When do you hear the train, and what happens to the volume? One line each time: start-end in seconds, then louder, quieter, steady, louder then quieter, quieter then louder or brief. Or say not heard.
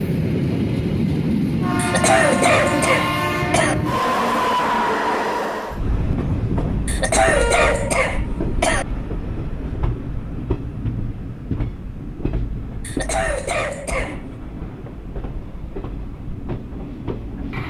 0.0-17.6 quieter.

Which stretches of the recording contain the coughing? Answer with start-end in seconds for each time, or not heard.
1.8-3.8, 6.8-8.8, 12.8-14.2.